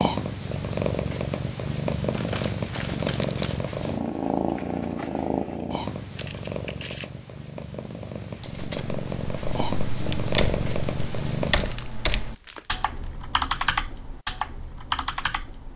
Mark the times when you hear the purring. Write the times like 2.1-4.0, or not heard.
0.0-11.8.